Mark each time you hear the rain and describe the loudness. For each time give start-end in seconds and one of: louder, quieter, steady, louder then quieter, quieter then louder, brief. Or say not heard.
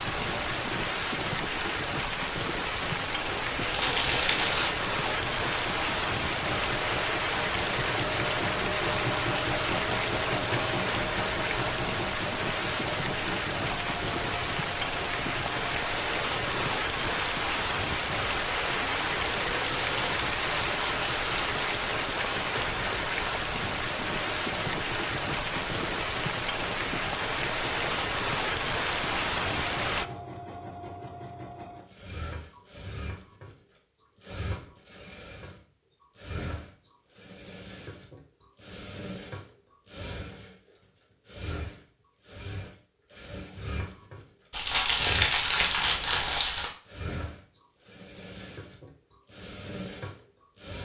0.0-30.1 steady.